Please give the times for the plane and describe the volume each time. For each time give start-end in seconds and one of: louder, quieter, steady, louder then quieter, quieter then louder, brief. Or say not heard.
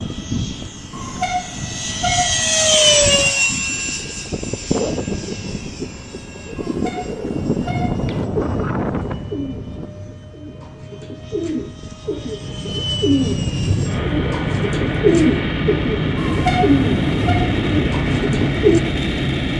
0.0-19.5 quieter then louder.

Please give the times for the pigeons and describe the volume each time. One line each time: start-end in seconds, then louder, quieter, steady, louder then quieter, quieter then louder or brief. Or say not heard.
8.1-18.8 louder.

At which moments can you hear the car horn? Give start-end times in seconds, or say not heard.
0.9-2.7, 6.5-8.1, 16.1-17.4.